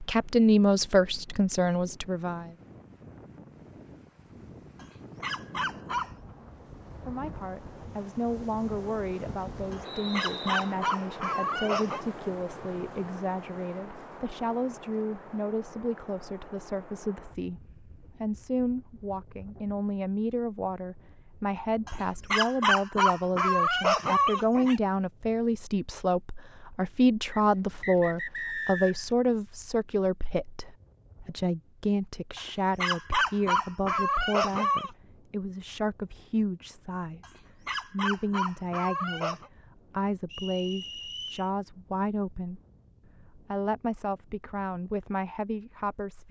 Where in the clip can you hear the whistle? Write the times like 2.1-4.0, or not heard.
9.8-10.8, 27.3-29.1, 40.3-41.5.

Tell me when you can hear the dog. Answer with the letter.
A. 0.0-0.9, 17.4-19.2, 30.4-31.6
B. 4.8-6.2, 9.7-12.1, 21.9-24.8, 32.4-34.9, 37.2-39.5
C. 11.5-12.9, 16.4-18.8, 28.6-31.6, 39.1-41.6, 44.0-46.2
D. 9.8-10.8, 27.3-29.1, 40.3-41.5
B.